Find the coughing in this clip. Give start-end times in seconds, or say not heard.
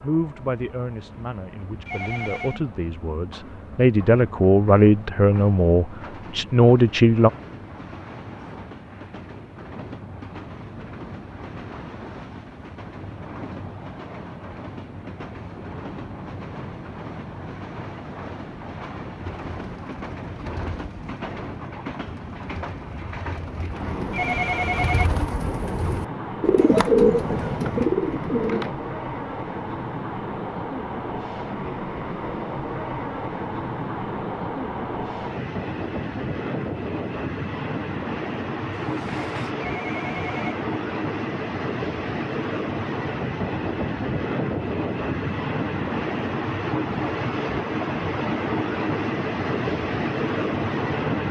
not heard.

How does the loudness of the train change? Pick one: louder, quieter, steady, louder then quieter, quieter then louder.
louder.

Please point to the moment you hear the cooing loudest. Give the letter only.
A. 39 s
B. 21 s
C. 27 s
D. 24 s
C.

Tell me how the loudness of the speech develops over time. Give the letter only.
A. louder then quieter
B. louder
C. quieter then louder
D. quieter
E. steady
B.